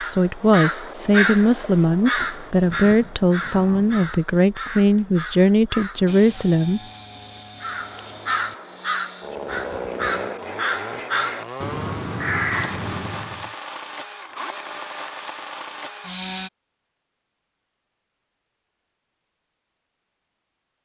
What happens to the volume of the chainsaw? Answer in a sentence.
The volume of the chainsaw goes up.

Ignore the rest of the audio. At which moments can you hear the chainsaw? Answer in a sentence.
You can hear the chainsaw from 6.0 to 16.5 s.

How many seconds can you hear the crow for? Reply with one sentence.
You can hear the crow for 12 seconds altogether.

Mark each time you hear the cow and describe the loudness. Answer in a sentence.
You can't hear the cow here.